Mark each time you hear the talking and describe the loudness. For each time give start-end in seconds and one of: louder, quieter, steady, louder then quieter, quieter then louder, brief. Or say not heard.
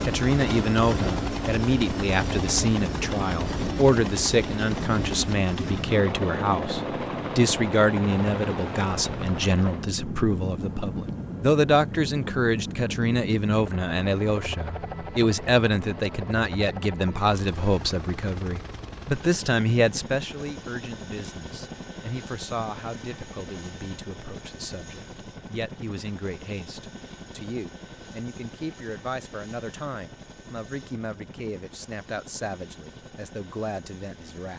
0.0-34.5 quieter.